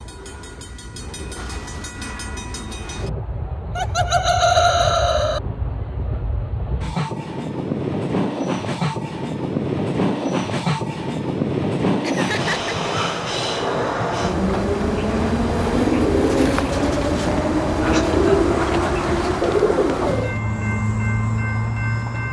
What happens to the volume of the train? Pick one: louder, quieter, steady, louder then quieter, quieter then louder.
louder.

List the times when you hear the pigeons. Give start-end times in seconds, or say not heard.
14.2-20.4.